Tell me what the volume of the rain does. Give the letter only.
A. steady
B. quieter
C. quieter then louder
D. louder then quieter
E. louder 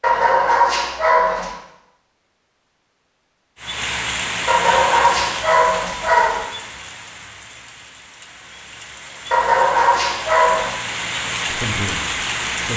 C.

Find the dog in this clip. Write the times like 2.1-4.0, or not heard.
0.0-1.6, 4.5-6.5, 9.3-10.8.